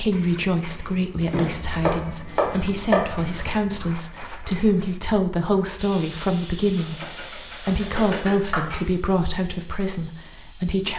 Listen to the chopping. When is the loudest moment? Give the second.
3 s.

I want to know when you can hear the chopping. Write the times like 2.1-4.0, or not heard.
1.4-3.5, 6.8-8.8.